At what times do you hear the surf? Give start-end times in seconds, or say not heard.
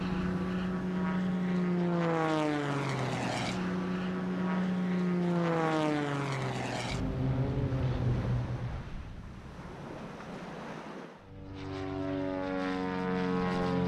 0.0-11.3.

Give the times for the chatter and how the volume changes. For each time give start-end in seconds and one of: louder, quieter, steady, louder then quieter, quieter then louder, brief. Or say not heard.
not heard.